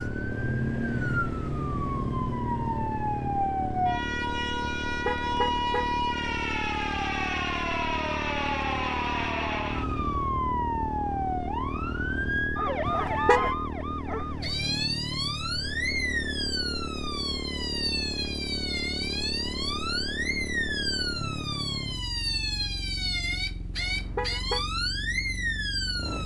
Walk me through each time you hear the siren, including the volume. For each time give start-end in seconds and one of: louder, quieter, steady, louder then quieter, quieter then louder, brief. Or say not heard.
0.0-26.2 steady.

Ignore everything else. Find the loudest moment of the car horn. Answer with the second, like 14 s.
13 s.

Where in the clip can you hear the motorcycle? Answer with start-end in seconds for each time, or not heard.
0.0-26.2.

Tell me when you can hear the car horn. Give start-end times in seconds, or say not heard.
4.8-6.0, 12.8-13.6, 23.7-24.6.